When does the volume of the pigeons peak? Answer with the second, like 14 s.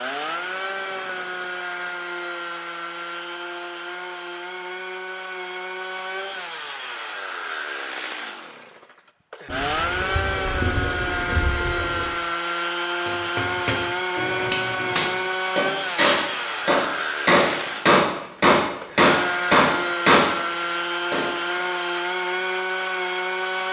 11 s.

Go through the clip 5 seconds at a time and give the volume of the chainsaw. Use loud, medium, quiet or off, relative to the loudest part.
medium, medium, loud, loud, loud.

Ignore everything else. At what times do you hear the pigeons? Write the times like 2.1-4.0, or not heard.
9.4-12.2.